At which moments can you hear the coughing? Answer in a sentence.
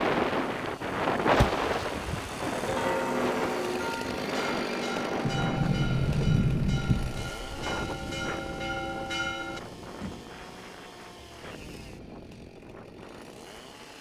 You can't hear the coughing here.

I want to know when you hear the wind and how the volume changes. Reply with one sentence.
You can hear the wind from 0.0 to 13.9 s, getting quieter.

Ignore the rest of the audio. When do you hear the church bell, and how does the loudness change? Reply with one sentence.
The church bell can be heard from 2.6 to 9.6 s, getting quieter then louder.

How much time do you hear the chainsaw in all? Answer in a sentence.
The chainsaw can be heard for 14 seconds in total.